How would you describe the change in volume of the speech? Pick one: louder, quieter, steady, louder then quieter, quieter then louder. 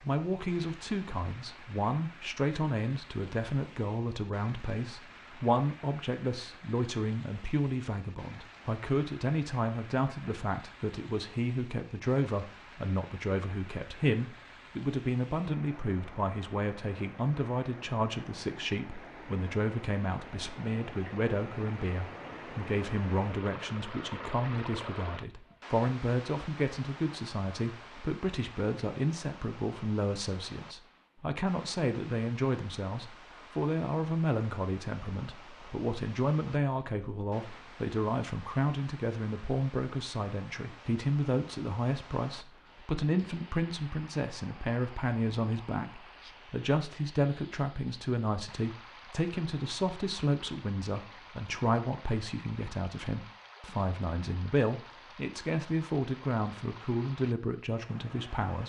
steady.